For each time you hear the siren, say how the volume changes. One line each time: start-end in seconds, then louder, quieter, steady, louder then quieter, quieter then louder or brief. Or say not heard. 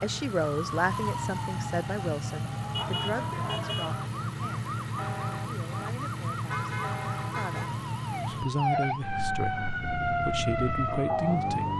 0.0-11.7 louder.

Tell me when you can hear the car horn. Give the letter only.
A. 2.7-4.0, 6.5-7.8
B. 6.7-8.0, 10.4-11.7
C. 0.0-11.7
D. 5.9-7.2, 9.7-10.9
A.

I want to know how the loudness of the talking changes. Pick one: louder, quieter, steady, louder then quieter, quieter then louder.
quieter then louder.